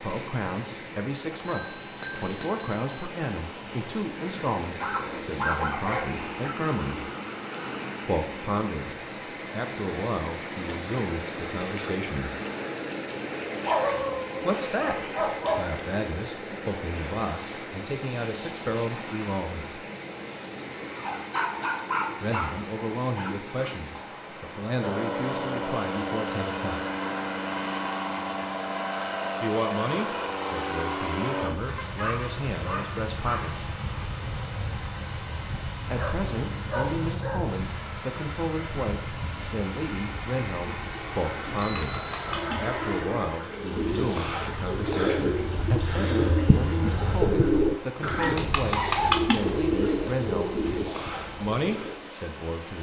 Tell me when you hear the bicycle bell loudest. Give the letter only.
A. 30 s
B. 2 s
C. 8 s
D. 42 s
D.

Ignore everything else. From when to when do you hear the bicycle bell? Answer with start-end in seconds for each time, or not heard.
1.4-3.0, 41.4-42.4.